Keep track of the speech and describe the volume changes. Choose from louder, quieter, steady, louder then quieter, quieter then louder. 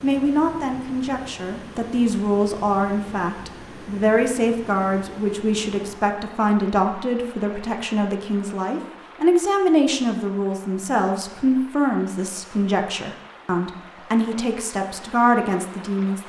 steady.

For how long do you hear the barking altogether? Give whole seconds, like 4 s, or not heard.
not heard.